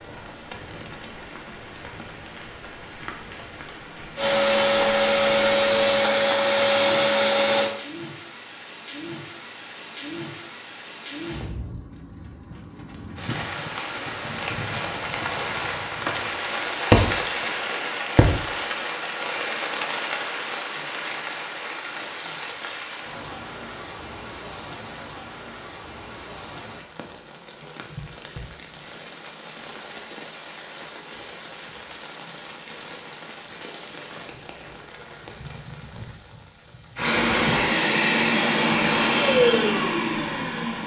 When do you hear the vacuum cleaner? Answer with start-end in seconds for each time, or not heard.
4.2-7.7, 37.0-40.8.